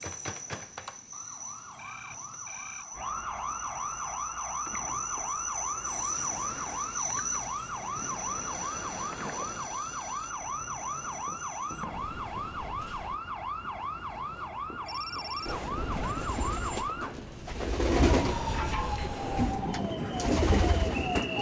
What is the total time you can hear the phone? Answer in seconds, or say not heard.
4 s.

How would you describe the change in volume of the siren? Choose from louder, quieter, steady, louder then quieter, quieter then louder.
steady.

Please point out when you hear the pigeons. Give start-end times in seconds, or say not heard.
15.2-21.3.